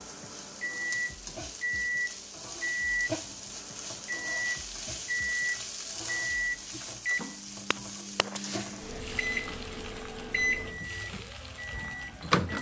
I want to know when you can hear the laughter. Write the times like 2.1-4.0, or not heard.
not heard.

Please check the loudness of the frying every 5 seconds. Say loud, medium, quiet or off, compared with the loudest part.
loud, loud, medium.